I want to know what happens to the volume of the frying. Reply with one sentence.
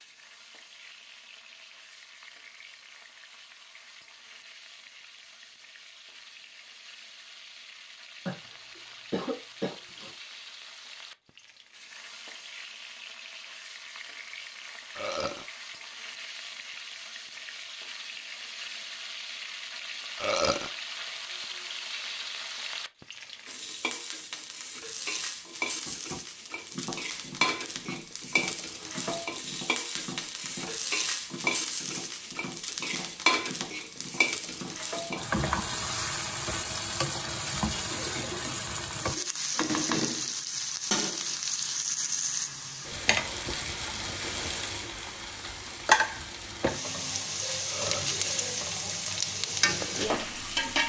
The loudness of the frying goes up.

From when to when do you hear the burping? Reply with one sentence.
You can hear the burping from 14.9 to 15.4 s, from 20.2 to 20.7 s and from 47.6 to 48.1 s.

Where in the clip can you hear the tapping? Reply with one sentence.
The tapping can be heard from 25.9 to 35.3 s.